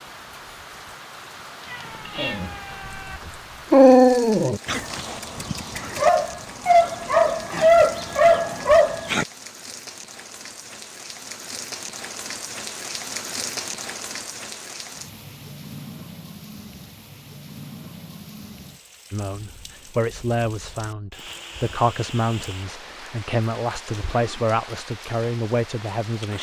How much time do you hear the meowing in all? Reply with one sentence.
The meowing can be heard for 2 seconds in total.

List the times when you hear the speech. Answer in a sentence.
The speech can be heard from 19.1 to 26.3 s.